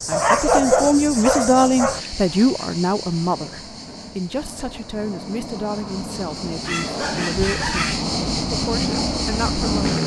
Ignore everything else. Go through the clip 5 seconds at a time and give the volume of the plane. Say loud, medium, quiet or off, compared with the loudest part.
quiet, loud.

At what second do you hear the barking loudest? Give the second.
1 s.